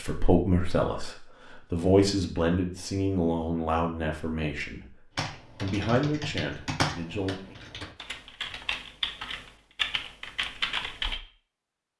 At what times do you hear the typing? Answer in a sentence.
The typing can be heard from 5.2 to 11.2 s.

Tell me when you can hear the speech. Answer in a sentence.
The speech can be heard from 0.0 to 7.5 s.